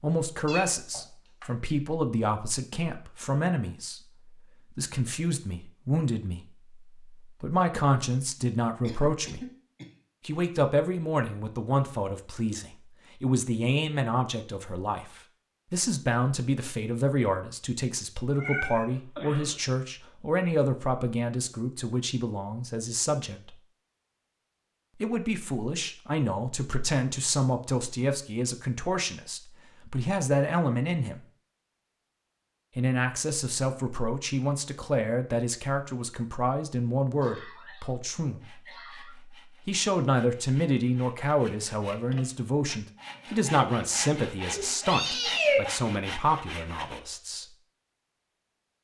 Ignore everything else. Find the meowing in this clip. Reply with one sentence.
You can hear the meowing from 0.5 to 1.4 s, from 18.4 to 18.9 s and from 44.6 to 45.6 s.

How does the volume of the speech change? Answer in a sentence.
The loudness of the speech stays about the same.